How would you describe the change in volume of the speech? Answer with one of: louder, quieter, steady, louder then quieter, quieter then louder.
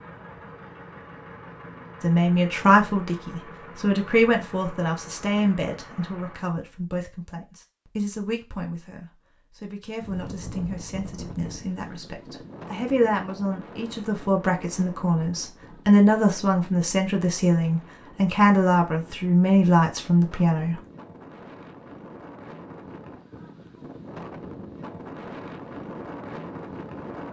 quieter then louder.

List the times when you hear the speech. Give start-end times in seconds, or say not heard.
2.0-20.8.